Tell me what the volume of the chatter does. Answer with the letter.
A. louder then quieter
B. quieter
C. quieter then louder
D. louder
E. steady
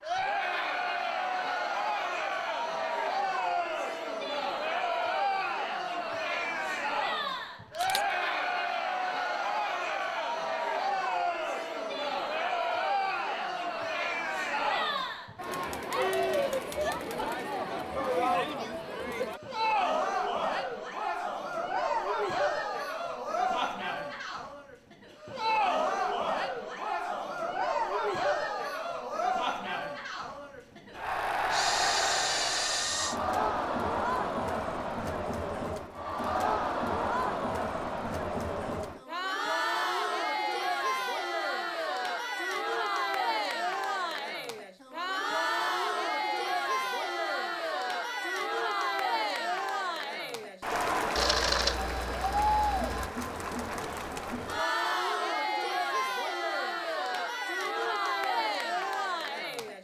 E.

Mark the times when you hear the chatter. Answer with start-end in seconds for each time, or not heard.
0.0-59.8.